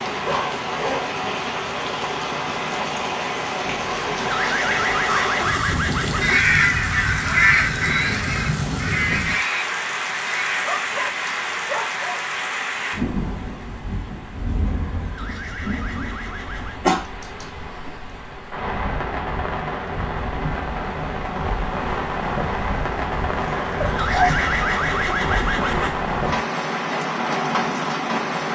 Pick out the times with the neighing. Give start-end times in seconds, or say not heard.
3.6-6.4, 14.8-16.9, 23.3-26.0.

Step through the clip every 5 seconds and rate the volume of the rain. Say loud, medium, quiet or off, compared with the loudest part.
loud, loud, loud, medium, loud, loud.